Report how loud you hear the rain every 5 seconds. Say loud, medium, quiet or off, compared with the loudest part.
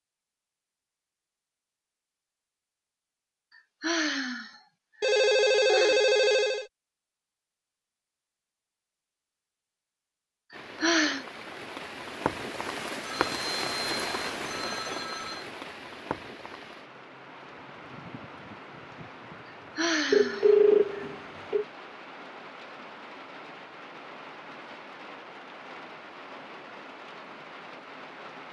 off, off, loud, medium, medium, medium.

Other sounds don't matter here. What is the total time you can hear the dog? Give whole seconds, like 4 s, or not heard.
not heard.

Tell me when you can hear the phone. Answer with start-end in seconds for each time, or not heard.
5.0-6.7, 13.1-15.4, 20.1-21.6.